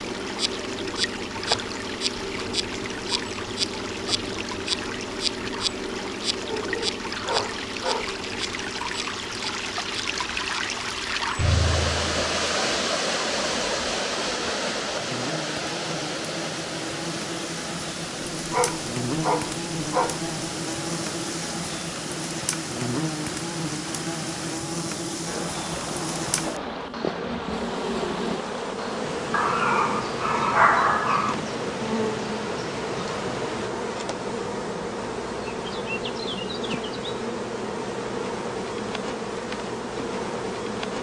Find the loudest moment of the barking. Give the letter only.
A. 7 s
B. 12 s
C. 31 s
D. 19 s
C.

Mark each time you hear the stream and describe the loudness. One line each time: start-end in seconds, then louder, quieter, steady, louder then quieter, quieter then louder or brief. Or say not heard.
0.0-33.7 louder then quieter.